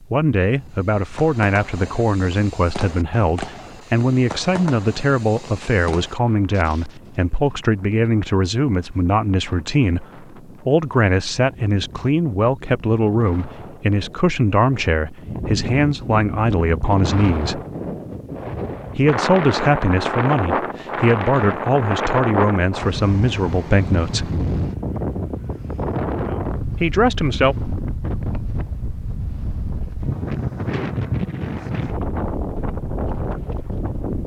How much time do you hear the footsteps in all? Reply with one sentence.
You can't hear the footsteps here.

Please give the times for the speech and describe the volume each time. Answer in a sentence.
The speech can be heard from 0.1 to 17.6 s, at a steady volume; from 18.9 to 24.3 s, at a steady volume; and briefly from 26.8 to 27.6 s.